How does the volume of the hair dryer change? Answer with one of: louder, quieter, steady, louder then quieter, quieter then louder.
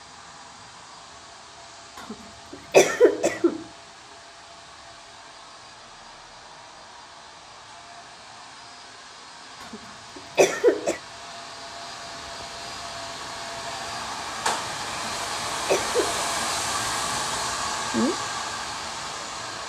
louder.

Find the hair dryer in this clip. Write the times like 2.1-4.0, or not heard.
0.0-19.6.